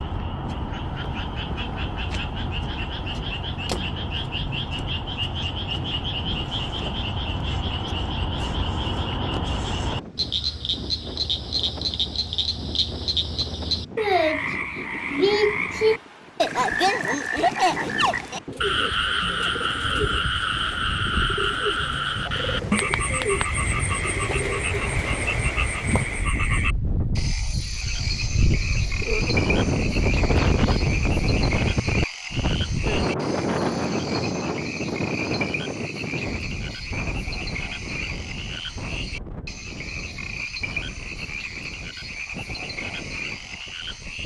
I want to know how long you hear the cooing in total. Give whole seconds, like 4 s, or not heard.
7 s.